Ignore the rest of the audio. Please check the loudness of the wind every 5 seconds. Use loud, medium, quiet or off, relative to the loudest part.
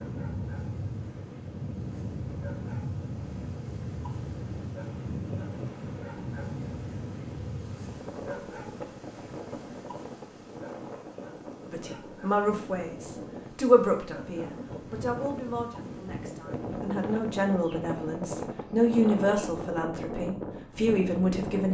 loud, loud, medium, loud, loud.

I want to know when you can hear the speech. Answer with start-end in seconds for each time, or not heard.
11.7-21.6.